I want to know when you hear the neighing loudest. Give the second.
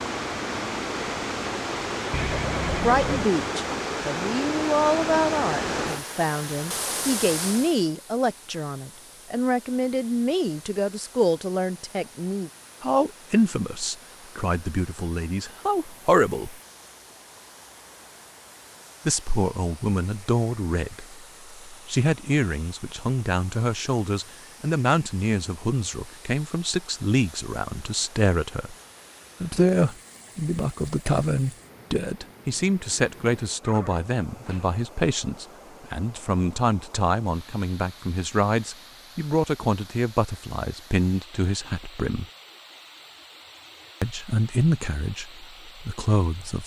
3 s.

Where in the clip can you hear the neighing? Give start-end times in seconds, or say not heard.
2.1-3.2, 33.6-34.7.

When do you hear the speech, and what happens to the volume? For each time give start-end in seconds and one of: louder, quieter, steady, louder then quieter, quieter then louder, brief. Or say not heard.
2.8-16.6 steady
19.1-28.8 steady
29.4-42.2 steady
44.0-46.6 brief.